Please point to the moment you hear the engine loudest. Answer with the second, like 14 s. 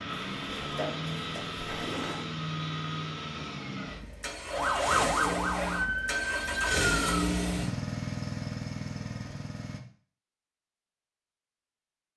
7 s.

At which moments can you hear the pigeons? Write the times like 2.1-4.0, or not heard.
0.2-2.3.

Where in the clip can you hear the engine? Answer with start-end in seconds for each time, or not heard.
0.0-9.8.